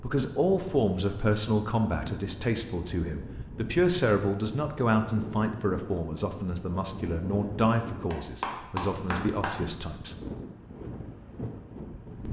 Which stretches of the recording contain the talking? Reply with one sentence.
The talking can be heard from 0.0 to 10.2 s.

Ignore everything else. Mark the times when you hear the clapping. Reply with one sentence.
You can hear the clapping from 8.1 to 9.6 s.